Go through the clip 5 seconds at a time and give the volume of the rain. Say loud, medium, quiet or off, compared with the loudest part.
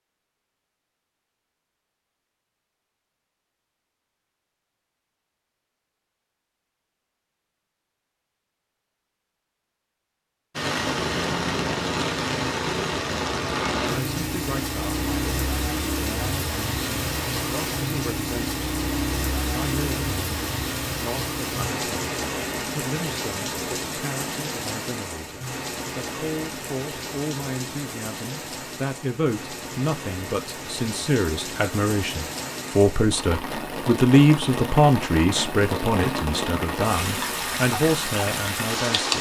off, off, loud, loud, loud, medium, medium, loud.